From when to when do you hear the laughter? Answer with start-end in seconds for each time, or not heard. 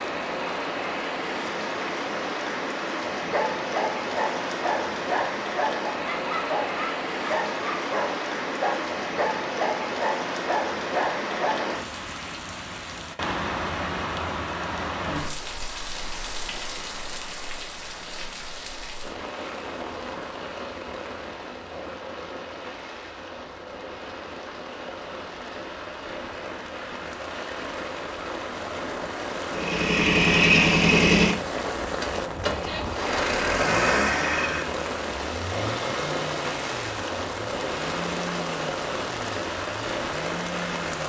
not heard.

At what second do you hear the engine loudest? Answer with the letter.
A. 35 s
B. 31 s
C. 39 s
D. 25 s
B.